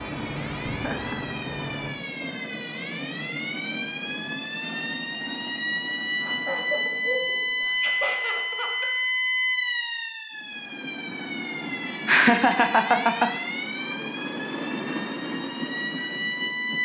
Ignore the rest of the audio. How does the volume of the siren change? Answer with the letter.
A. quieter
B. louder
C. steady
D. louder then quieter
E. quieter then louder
D.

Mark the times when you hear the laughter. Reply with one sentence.
The laughter can be heard from 0.6 to 1.4 s, from 6.2 to 8.9 s and from 12.1 to 13.3 s.